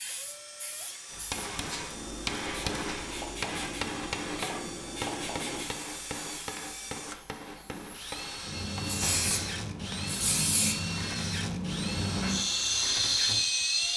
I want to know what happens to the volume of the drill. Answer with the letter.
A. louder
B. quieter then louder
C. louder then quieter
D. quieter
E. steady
A.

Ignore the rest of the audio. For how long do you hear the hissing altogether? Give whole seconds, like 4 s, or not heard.
14 s.